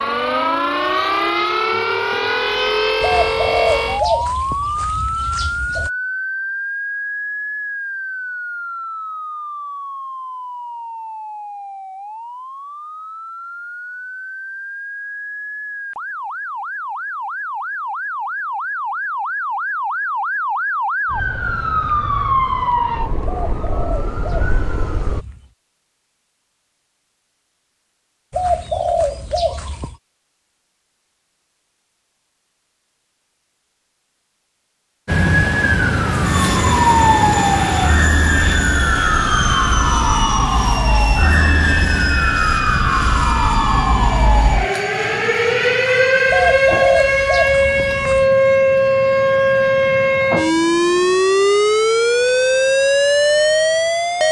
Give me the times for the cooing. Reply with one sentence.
You can hear the cooing from 3.0 to 5.9 s, from 23.2 to 25.5 s, from 28.3 to 29.9 s and from 46.2 to 48.3 s.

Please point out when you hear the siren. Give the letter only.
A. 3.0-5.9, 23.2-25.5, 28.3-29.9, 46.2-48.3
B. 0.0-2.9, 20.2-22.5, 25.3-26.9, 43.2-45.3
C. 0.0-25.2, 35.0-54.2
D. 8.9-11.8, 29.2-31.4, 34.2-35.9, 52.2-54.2
C.